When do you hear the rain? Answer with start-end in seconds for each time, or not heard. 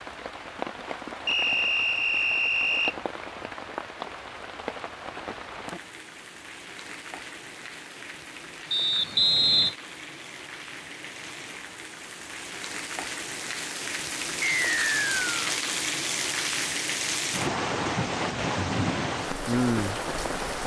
0.0-20.6.